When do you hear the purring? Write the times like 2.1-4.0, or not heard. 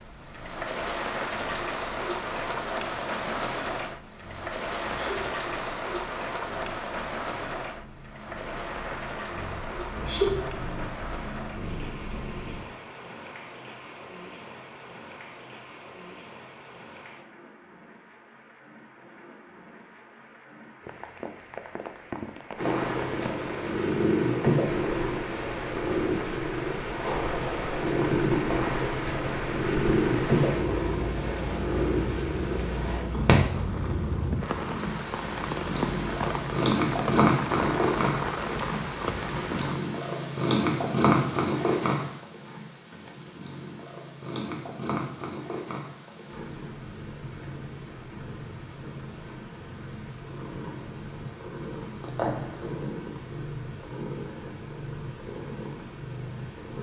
0.0-12.6, 22.6-56.7.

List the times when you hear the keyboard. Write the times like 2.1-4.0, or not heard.
not heard.